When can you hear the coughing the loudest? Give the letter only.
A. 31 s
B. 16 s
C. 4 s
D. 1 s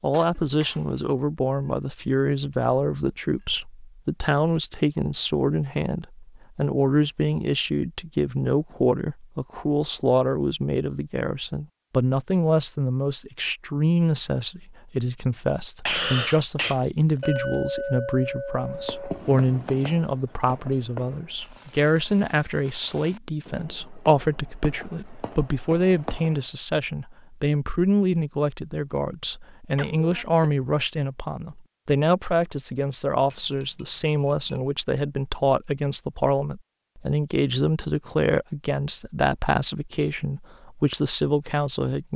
B.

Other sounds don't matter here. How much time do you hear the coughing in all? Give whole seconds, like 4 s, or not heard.
2 s.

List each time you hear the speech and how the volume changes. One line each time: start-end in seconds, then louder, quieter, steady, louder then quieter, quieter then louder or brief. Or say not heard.
0.0-42.1 steady.